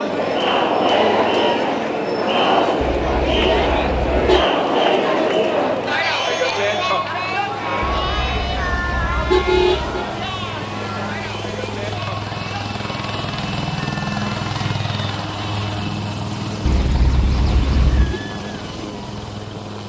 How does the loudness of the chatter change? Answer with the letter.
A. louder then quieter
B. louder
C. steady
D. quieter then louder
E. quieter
E.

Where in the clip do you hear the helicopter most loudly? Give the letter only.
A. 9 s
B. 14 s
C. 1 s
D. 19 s
B.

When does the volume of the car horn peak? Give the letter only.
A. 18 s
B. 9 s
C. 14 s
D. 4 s
B.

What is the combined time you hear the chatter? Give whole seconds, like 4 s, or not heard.
16 s.